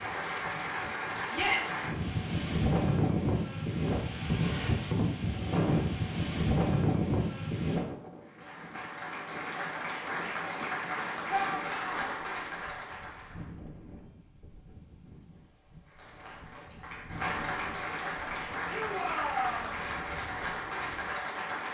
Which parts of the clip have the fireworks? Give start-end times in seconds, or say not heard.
not heard.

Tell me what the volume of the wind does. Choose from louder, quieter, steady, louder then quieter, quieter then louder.
quieter.